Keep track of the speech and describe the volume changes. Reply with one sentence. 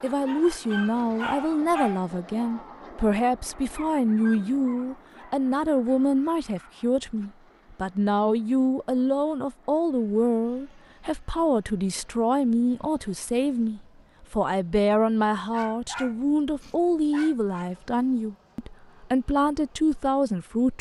The volume of the speech stays about the same.